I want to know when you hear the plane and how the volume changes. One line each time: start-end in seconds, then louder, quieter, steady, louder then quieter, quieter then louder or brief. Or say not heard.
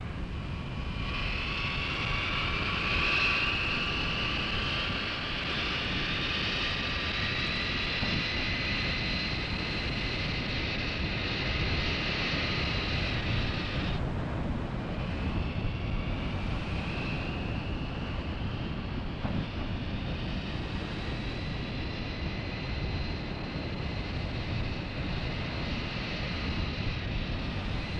0.0-27.9 quieter.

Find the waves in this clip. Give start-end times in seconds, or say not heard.
0.0-27.9.